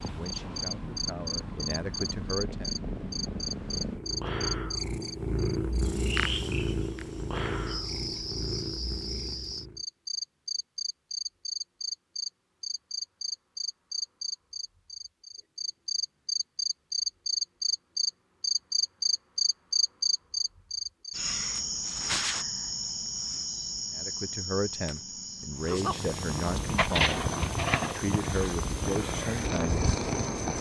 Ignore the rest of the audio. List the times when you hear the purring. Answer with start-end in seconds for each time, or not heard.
0.0-9.8, 25.6-30.5.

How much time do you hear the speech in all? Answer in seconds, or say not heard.
9 s.